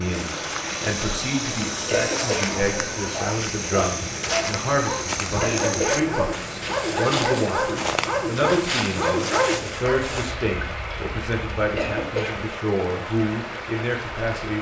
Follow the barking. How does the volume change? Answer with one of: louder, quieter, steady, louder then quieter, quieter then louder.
louder.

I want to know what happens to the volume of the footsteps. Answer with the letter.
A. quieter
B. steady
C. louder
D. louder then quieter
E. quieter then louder
B.